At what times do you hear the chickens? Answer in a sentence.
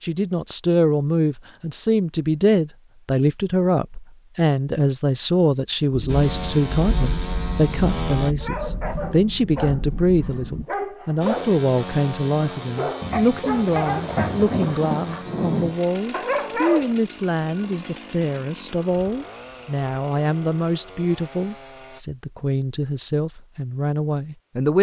You can't hear the chickens here.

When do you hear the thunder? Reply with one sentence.
You can hear the thunder from 5.9 to 10.7 s and from 13.0 to 15.8 s.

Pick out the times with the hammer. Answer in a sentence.
You can't hear the hammer here.